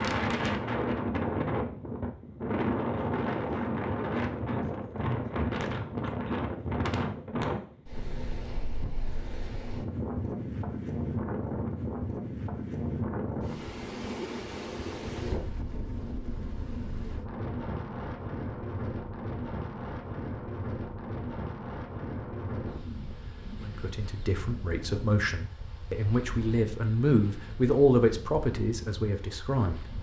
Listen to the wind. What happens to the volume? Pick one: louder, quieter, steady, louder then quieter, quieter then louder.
quieter.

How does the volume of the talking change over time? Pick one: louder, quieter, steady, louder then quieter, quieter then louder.
louder then quieter.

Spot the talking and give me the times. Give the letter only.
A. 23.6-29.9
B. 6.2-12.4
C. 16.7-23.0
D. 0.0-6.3
A.